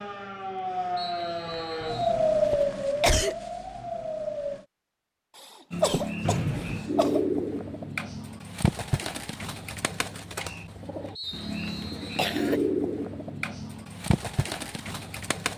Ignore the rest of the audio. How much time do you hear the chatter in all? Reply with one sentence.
The chatter can't be heard in this clip.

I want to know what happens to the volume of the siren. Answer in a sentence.
The volume of the siren goes up, then down.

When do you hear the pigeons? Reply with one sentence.
The pigeons can be heard from 5.7 to 15.5 s.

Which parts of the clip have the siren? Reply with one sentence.
The siren can be heard from 0.0 to 4.7 s.